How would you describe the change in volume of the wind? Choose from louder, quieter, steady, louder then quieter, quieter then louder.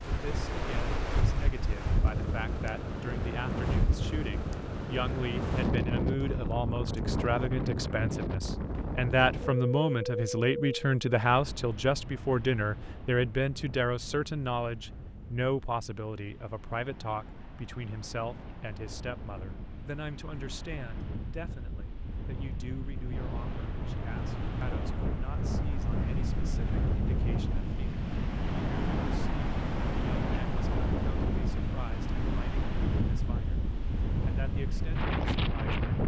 quieter then louder.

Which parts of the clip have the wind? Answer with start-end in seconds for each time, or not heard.
0.0-36.0.